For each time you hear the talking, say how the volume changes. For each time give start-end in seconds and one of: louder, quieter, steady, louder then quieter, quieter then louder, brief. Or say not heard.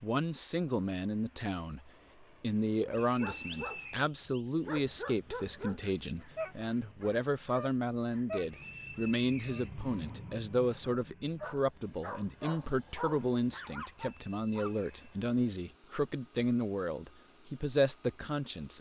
0.0-18.7 steady.